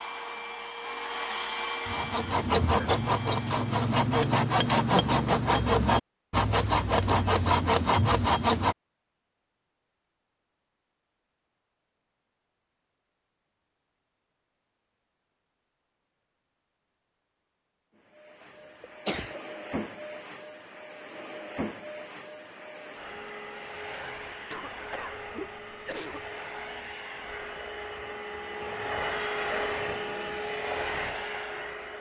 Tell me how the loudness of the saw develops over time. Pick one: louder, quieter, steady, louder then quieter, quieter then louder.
steady.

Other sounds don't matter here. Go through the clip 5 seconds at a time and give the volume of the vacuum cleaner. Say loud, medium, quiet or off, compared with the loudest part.
loud, off, off, medium, medium, loud, loud.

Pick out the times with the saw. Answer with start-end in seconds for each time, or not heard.
1.9-8.8.